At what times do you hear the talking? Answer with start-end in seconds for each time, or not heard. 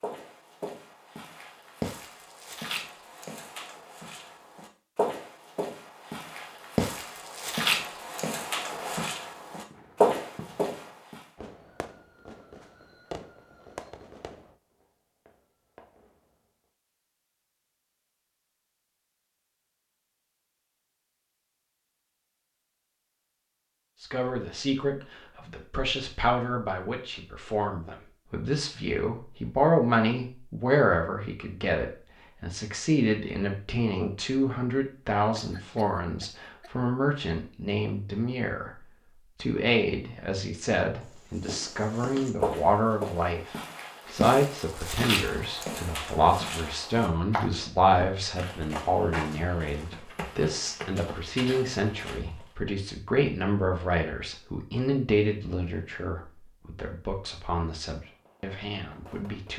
24.0-59.5.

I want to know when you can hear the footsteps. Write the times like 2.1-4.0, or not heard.
0.0-11.2, 41.0-52.5.